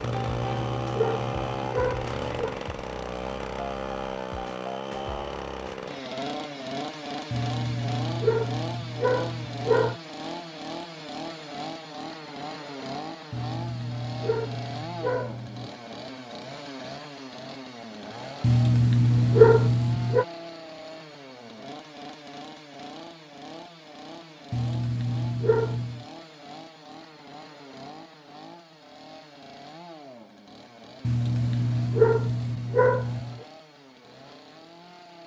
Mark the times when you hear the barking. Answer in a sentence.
You can hear the barking from 0.0 to 2.5 s, from 7.3 to 9.9 s, from 13.3 to 15.7 s, from 18.4 to 20.2 s, from 24.5 to 26.1 s and from 31.1 to 33.5 s.